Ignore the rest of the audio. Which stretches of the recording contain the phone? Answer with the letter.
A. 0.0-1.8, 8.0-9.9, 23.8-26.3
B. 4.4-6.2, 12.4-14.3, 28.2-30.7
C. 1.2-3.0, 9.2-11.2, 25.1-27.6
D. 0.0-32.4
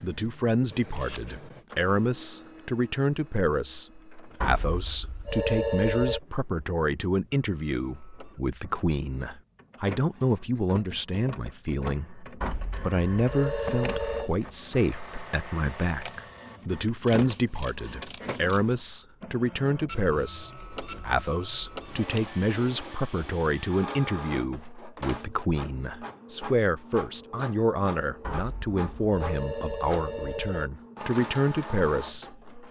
B.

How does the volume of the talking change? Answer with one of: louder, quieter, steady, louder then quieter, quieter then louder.
steady.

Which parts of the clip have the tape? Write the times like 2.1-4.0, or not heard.
not heard.